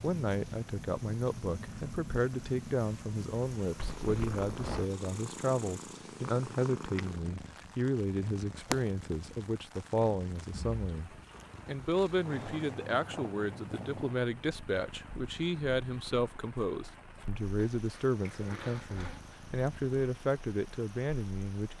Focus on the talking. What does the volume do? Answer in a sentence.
The loudness of the talking stays about the same.